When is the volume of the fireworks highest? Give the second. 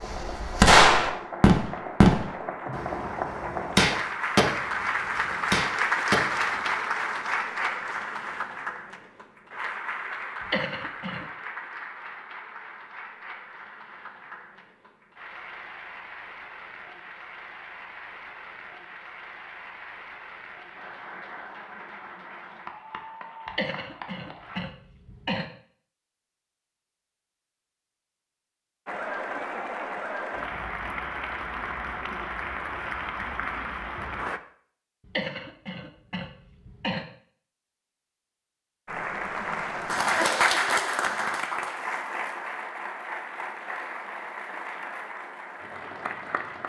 1 s.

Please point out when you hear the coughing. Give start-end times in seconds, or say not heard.
10.4-11.2, 23.4-25.4, 35.0-37.0.